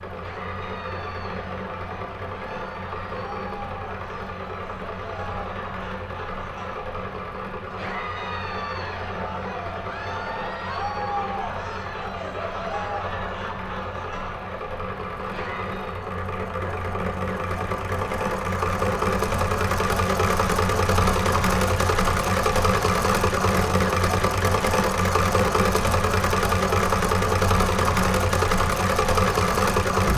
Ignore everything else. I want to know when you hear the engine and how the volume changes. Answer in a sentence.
You can hear the engine from 0.0 to 30.1 s, getting louder.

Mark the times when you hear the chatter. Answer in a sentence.
The chatter can be heard from 0.1 to 16.0 s.